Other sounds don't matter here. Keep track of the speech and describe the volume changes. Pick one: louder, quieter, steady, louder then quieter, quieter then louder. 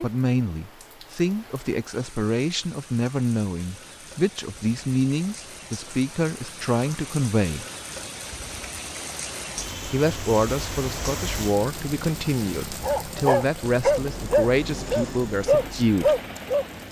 steady.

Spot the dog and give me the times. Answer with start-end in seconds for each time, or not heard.
12.8-16.6.